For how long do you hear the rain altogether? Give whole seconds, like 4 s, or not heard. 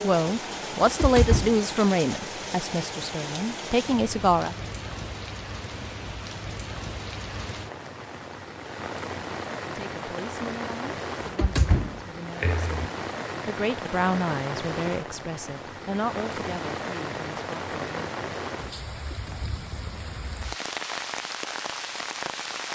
23 s.